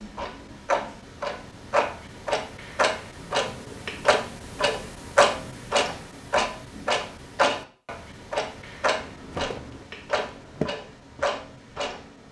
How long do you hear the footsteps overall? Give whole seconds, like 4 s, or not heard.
3 s.